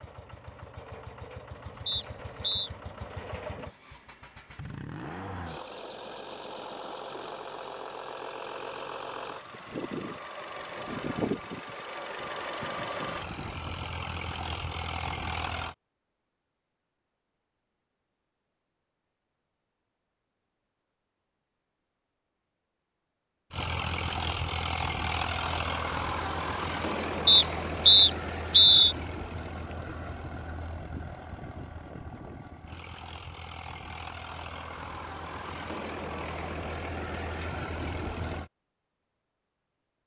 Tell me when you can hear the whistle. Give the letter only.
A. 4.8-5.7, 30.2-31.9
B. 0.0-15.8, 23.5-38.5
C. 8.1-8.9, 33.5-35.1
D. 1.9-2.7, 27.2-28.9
D.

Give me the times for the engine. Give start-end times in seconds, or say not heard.
0.0-15.8, 23.5-38.5.